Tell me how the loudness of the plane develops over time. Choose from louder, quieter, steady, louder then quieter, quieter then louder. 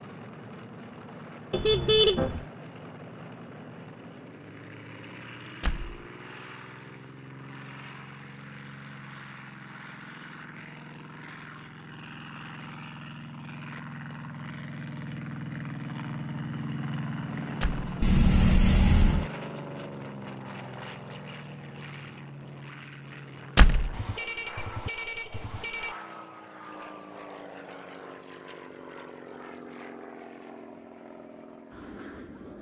louder then quieter.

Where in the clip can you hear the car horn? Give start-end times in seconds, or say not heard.
1.5-2.5, 18.0-19.3, 23.9-25.9.